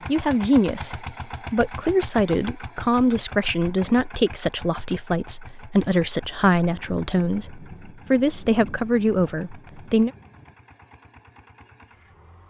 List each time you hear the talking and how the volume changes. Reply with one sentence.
The talking can be heard from 0.1 to 10.1 s, at a steady volume.